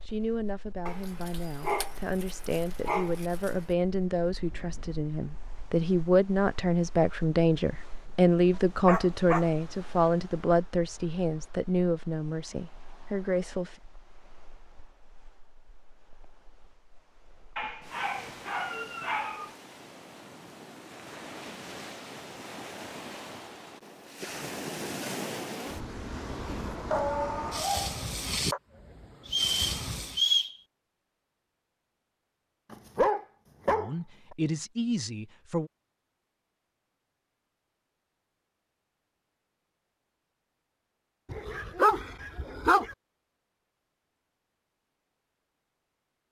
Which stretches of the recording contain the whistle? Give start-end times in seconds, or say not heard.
29.2-30.6.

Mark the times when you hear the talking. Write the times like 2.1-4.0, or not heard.
0.1-13.8, 33.7-35.7.